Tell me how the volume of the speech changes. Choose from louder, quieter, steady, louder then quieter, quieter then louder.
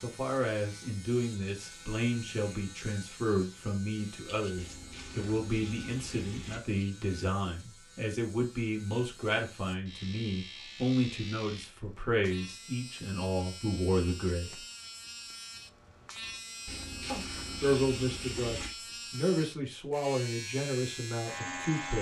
steady.